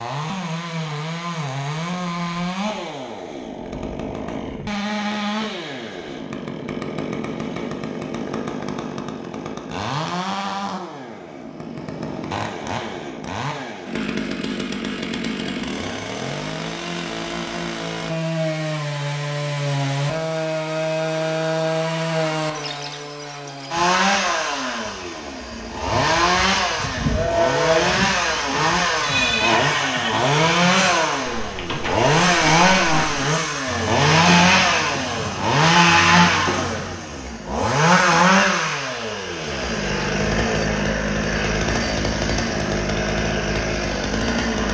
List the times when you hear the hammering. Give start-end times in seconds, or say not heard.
not heard.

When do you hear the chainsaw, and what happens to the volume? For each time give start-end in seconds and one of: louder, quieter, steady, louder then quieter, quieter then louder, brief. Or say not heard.
0.0-44.6 louder.